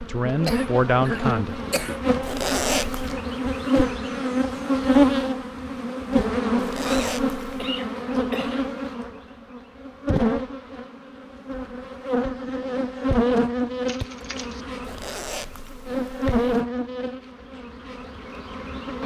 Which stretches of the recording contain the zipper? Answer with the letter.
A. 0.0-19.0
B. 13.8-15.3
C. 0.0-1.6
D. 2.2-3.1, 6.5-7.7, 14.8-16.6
D.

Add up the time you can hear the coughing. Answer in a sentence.
The coughing can be heard for 4 seconds in total.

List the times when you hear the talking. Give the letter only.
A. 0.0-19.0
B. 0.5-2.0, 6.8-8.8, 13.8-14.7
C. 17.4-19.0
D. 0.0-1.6
D.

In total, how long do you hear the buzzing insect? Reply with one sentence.
You can hear the buzzing insect for 19 seconds altogether.